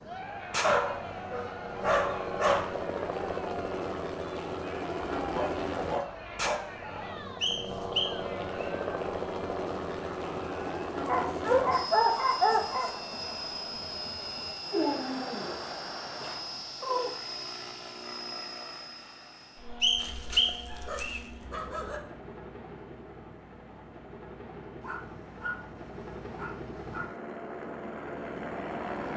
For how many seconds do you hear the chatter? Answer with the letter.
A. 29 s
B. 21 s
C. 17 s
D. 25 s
C.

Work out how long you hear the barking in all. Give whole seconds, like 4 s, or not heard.
12 s.